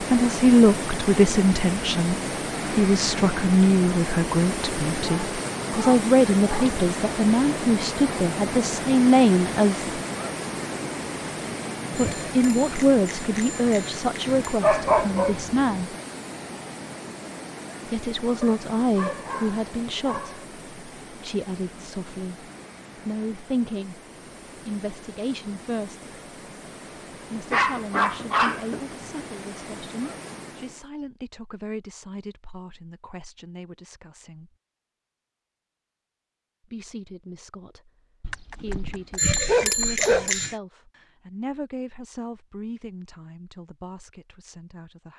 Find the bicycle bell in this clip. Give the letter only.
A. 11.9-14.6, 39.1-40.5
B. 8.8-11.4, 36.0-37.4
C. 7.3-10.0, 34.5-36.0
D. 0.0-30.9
A.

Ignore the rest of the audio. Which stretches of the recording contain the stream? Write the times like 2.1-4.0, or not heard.
0.0-30.9.